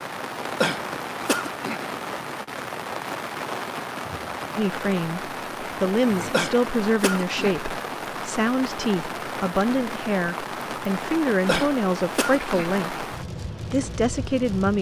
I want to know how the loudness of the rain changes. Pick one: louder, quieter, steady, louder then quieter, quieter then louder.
steady.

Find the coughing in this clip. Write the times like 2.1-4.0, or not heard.
0.6-1.9, 6.3-7.6, 11.4-12.8.